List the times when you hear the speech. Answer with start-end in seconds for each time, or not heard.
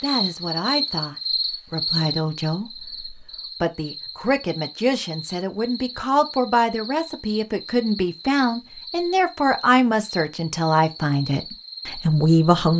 0.0-12.7.